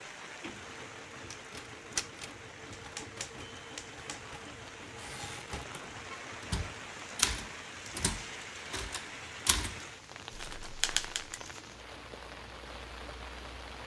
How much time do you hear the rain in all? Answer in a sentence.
The rain can be heard for 14 seconds in total.